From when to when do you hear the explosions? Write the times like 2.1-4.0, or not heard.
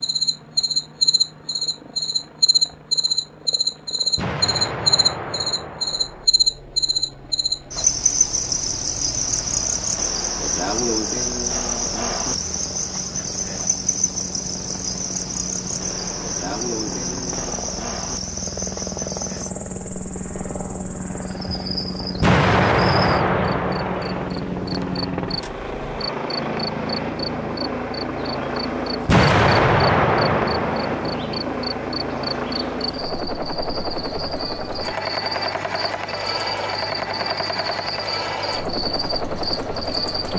4.2-6.2, 22.2-24.3, 29.1-31.2.